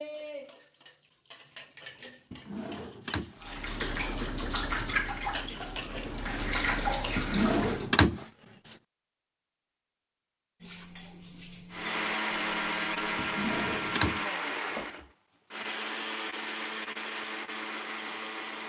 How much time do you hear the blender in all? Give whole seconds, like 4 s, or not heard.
7 s.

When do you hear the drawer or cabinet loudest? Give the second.
8 s.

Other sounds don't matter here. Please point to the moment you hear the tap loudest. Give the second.
7 s.